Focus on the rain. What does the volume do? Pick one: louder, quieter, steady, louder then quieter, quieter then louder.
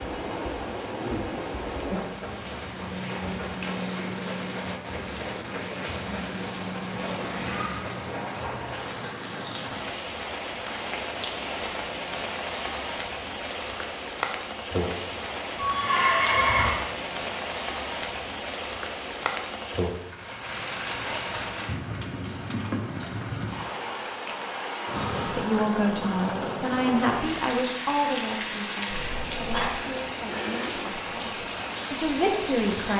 steady.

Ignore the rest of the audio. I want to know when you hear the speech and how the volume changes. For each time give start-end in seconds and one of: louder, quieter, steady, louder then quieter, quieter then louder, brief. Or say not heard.
25.2-32.9 quieter then louder.